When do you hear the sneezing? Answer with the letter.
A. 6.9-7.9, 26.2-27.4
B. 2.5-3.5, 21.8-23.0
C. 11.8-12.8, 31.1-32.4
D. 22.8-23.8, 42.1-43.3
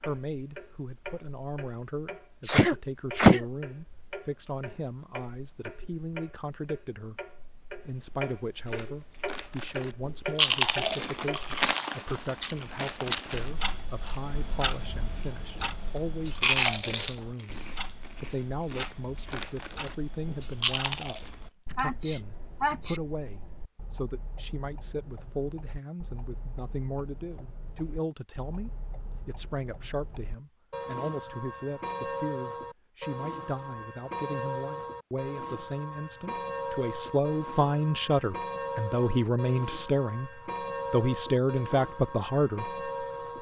B.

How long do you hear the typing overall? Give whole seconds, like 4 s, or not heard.
not heard.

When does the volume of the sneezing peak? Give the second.
3 s.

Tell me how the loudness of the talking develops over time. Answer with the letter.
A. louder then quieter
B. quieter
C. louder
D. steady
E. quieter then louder
C.